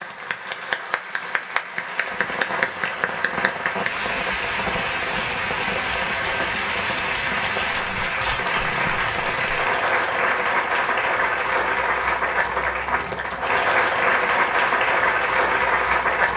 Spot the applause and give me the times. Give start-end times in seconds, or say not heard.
0.0-16.3.